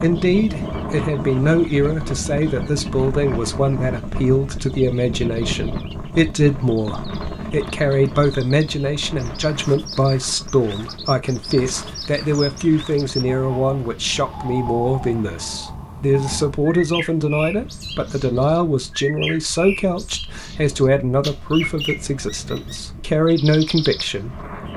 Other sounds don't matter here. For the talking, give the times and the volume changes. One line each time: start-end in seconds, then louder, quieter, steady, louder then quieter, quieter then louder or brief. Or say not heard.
0.0-24.4 steady.